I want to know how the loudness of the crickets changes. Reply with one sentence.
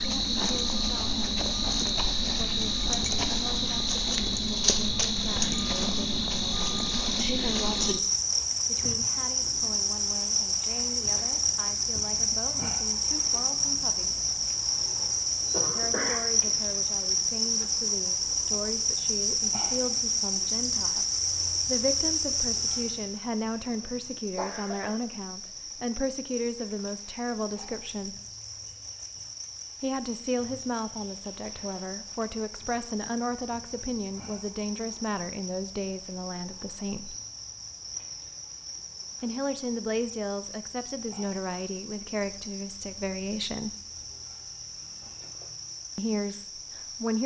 The loudness of the crickets goes down.